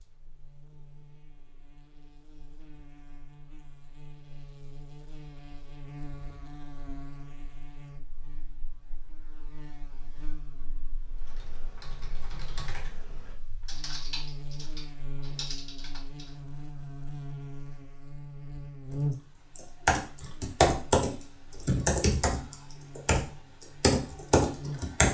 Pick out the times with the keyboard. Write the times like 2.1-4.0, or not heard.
11.2-16.2, 19.6-25.1.